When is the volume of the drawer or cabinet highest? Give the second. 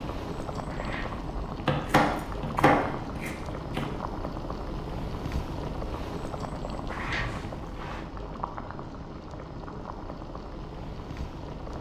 7 s.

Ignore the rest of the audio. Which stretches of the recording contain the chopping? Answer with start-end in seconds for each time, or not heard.
1.6-3.9.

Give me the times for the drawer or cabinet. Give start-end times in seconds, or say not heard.
0.7-1.2, 6.8-8.1.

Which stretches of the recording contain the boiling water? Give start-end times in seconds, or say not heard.
0.0-11.7.